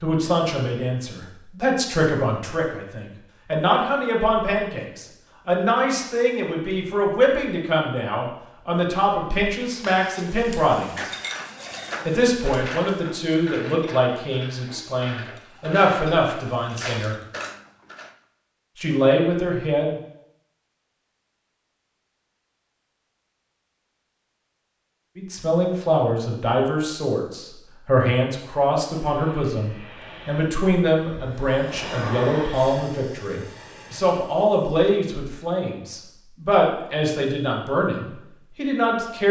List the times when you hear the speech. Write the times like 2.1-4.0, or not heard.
0.0-11.1, 12.1-17.1, 18.8-19.9, 25.1-39.2.